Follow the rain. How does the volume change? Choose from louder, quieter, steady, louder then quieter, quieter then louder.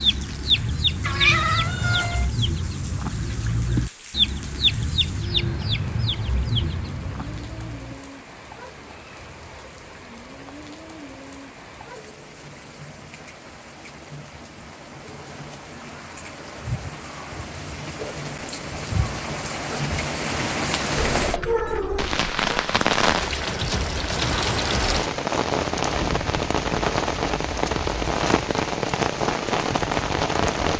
louder.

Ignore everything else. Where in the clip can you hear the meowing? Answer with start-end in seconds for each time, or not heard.
1.0-2.2, 20.9-22.4.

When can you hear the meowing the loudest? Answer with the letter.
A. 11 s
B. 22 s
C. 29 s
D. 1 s
D.